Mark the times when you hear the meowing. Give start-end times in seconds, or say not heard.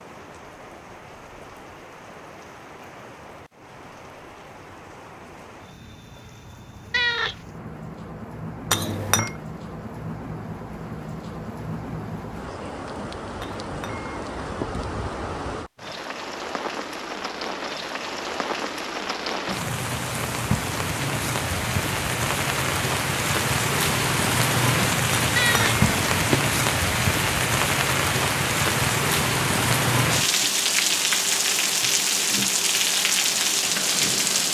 6.9-7.4, 25.4-25.8.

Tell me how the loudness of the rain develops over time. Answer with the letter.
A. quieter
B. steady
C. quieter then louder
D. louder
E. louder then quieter
D.